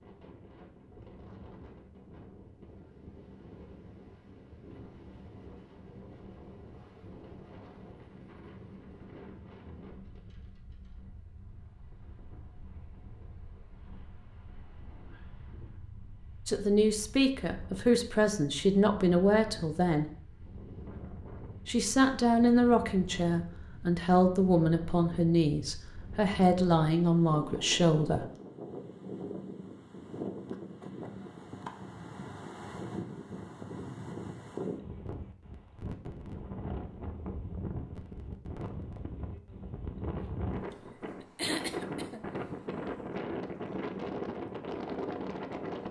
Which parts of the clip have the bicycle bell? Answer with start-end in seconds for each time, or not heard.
not heard.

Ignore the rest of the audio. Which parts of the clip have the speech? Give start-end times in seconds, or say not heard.
16.4-20.1, 21.6-28.2.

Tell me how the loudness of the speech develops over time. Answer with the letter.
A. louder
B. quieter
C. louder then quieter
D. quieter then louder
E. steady
E.